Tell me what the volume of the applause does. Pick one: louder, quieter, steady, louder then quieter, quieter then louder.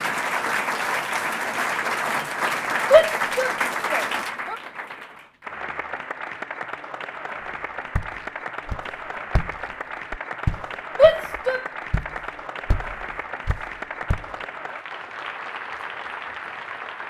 quieter.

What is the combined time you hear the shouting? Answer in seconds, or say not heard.
2 s.